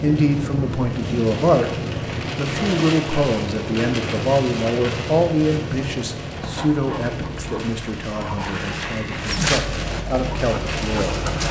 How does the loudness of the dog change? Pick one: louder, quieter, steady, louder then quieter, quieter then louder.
louder then quieter.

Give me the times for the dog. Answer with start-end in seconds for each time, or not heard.
6.3-11.4.